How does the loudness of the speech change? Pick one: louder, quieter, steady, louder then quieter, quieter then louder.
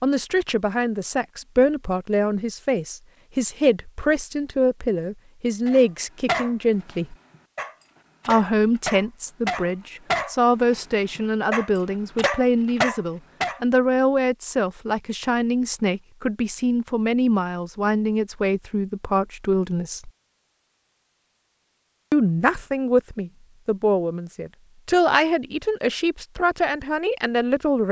steady.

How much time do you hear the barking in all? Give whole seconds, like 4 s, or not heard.
8 s.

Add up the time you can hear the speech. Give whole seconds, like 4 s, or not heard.
25 s.